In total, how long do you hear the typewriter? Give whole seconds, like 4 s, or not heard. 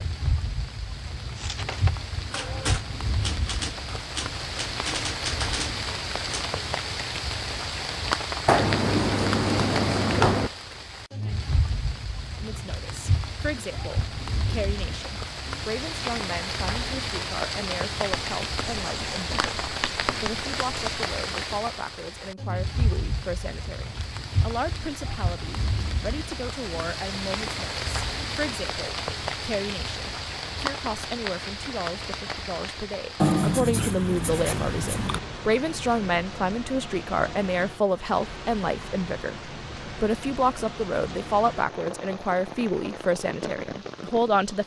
5 s.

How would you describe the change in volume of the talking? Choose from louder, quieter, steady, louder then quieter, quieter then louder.
louder.